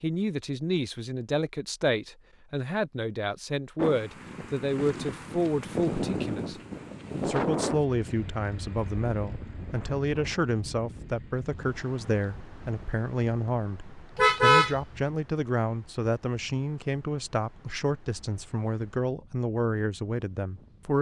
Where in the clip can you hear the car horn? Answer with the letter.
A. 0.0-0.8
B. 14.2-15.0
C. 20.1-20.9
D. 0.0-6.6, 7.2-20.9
B.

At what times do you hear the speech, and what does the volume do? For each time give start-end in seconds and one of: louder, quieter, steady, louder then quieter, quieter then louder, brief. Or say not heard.
0.0-6.6 steady
7.2-20.9 steady.